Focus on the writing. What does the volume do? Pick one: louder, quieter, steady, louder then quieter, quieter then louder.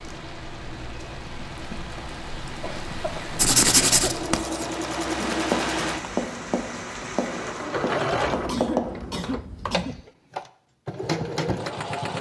quieter.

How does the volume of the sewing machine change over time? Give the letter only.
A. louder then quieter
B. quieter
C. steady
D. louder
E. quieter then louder
D.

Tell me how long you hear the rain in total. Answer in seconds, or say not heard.
8 s.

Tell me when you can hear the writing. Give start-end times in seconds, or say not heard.
3.4-9.0.